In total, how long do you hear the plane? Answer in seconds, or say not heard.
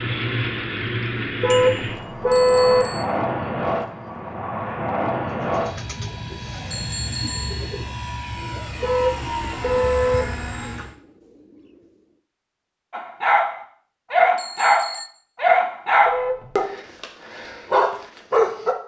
11 s.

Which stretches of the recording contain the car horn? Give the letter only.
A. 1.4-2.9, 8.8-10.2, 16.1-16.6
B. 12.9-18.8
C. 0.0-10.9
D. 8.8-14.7
A.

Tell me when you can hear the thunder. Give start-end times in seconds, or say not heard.
not heard.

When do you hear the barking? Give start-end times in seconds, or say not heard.
12.9-18.8.